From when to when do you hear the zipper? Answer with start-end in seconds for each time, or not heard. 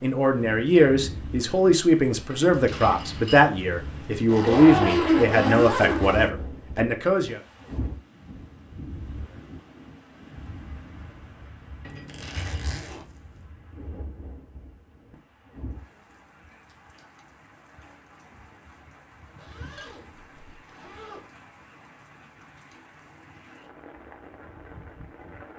4.2-6.3, 12.1-13.1, 19.4-21.3.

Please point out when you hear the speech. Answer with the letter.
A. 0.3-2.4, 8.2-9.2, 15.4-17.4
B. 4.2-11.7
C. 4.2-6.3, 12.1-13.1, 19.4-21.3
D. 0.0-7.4
D.